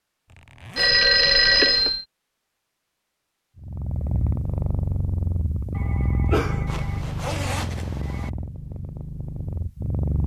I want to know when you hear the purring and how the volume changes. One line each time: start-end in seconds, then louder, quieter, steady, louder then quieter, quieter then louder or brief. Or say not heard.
3.5-10.2 quieter.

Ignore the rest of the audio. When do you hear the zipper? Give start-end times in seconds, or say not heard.
0.2-1.0, 6.7-8.3.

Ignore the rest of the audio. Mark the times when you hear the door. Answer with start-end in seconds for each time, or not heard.
not heard.